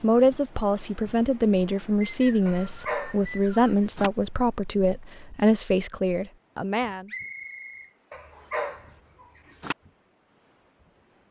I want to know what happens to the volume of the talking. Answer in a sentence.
The loudness of the talking stays about the same.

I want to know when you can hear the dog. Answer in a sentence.
You can hear the dog from 2.5 to 4.1 s and from 8.1 to 9.8 s.